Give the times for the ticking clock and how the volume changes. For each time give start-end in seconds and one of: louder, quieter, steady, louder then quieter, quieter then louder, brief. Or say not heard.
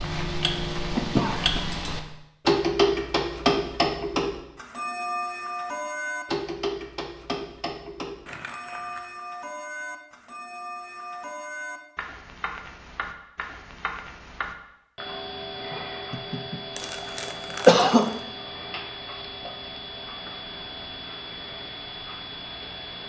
0.0-23.0 quieter.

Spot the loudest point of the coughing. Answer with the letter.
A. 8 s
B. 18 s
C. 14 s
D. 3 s
B.